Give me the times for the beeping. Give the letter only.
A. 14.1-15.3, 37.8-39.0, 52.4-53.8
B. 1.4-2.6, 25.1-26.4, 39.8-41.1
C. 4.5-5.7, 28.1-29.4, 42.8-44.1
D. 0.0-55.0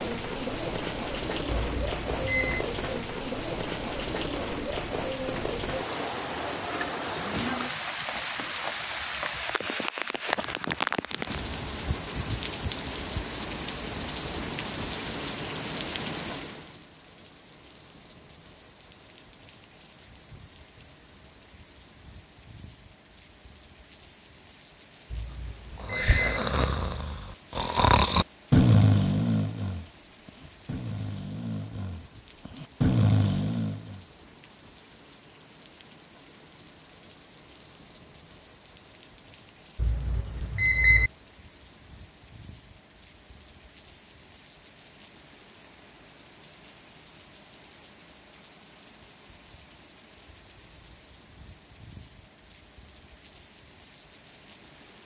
B.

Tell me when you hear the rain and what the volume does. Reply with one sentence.
You can hear the rain from 0.0 to 55.0 s, getting quieter.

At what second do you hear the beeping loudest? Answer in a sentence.
The loudest moment of the beeping is at 41 seconds.